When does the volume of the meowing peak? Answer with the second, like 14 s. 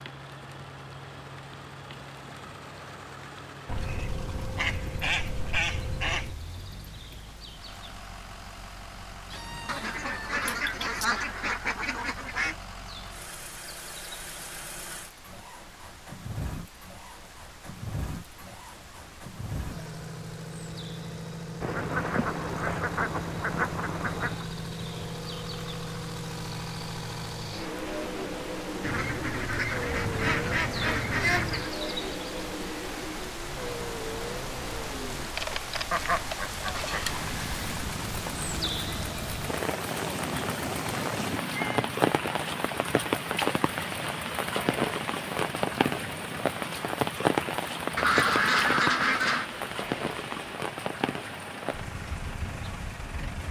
42 s.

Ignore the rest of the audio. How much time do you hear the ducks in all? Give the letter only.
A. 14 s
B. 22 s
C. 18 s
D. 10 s
A.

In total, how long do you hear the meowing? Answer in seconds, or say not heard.
3 s.